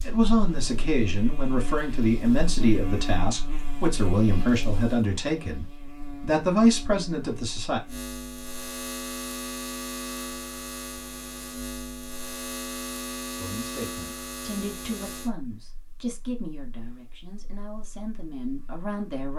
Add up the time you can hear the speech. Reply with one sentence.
The speech can be heard for 14 seconds in total.